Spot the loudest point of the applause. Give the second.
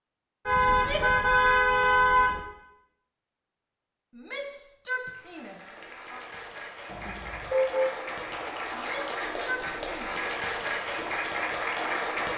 12 s.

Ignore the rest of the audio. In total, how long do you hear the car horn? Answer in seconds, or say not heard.
3 s.